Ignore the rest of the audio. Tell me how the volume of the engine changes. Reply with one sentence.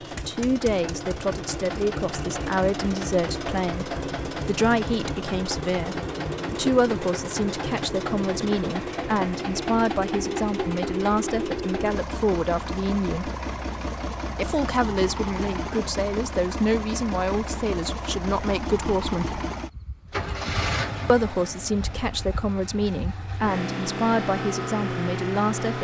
The volume of the engine stays about the same.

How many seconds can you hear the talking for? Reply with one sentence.
You can hear the talking for 23 seconds altogether.